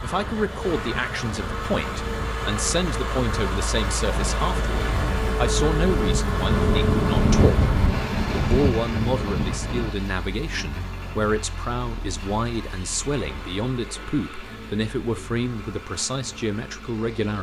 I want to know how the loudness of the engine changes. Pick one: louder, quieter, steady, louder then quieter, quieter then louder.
quieter.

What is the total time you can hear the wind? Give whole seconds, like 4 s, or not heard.
10 s.